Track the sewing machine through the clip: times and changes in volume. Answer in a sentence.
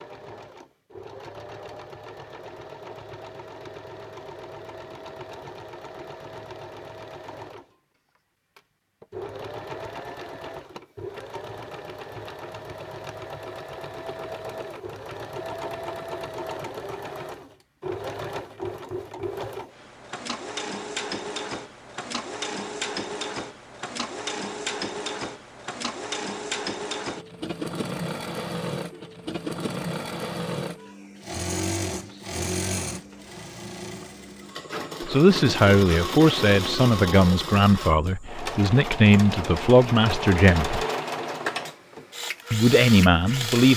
The sewing machine can be heard from 0.0 to 43.7 s, getting louder.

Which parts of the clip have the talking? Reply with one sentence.
The talking can be heard from 35.0 to 40.9 s and from 42.5 to 43.7 s.